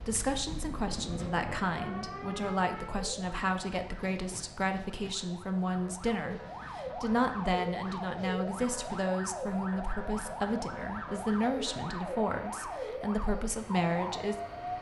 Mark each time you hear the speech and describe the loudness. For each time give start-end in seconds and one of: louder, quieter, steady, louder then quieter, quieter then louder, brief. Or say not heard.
0.1-14.3 steady.